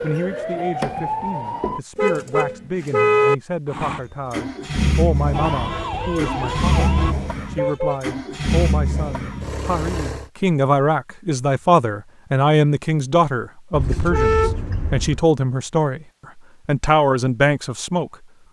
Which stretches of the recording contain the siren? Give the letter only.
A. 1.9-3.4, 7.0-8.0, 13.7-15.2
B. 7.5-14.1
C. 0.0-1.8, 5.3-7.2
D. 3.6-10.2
C.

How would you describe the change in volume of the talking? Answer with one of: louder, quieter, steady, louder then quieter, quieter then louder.
louder.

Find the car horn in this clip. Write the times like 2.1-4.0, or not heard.
1.9-3.4, 7.0-8.0, 13.7-15.2.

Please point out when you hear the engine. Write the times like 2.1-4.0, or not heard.
3.6-10.2.